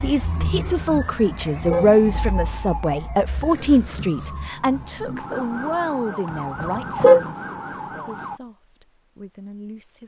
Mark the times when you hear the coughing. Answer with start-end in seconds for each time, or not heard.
not heard.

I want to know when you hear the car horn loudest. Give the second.
7 s.